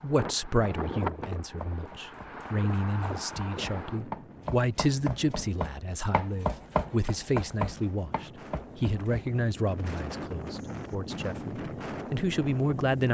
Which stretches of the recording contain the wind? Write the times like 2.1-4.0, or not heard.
0.0-13.1.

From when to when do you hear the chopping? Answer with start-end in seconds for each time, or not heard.
1.0-9.3.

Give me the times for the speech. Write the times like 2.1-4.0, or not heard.
0.0-13.1.